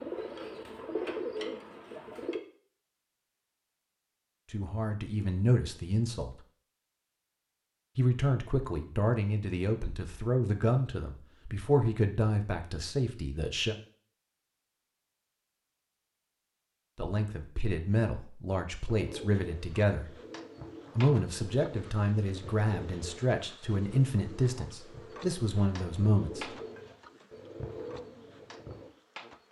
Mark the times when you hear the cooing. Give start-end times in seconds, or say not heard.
0.0-2.4, 18.9-28.9.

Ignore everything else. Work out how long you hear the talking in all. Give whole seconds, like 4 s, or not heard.
16 s.